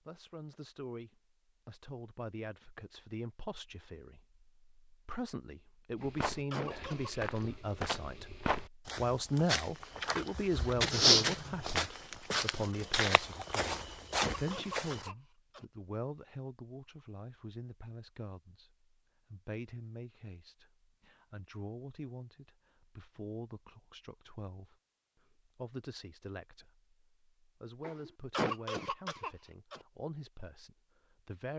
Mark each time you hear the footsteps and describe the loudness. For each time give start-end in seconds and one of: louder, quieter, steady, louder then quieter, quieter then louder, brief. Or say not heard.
6.0-15.1 louder then quieter.